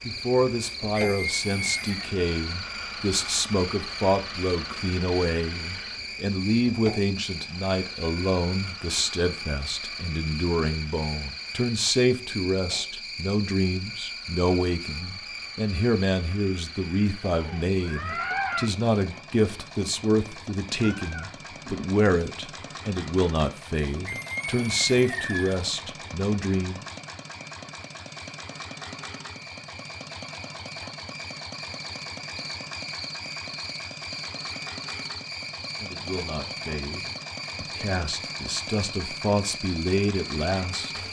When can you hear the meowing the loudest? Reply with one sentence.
The loudest moment of the meowing is at 18 seconds.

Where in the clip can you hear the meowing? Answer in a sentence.
You can hear the meowing from 17.4 to 18.7 s and from 20.8 to 21.9 s.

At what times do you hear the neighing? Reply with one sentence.
The neighing can be heard from 0.9 to 2.0 s and from 24.1 to 25.6 s.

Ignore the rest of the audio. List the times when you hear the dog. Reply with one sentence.
The dog can't be heard in this clip.